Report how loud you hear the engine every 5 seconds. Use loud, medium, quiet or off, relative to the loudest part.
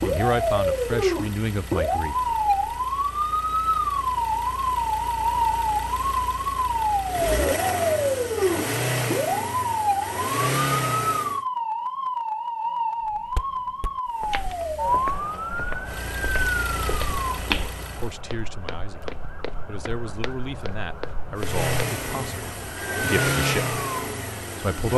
quiet, loud, loud, medium, loud.